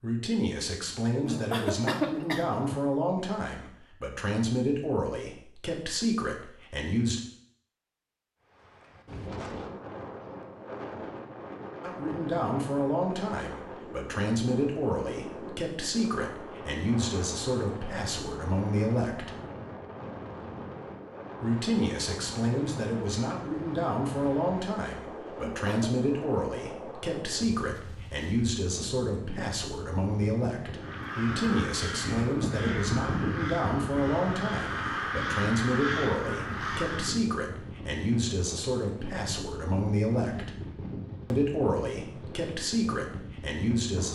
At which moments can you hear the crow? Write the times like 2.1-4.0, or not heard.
30.8-37.1.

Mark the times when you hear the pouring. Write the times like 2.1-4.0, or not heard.
not heard.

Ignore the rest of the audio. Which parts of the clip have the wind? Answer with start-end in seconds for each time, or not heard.
8.5-44.1.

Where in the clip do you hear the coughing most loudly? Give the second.
2 s.